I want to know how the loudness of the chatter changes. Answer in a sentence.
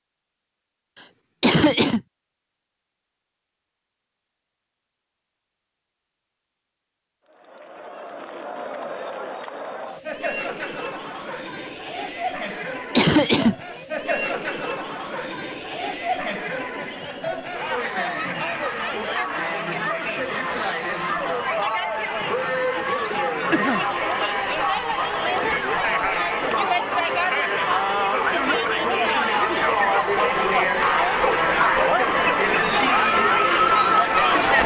The volume of the chatter goes up.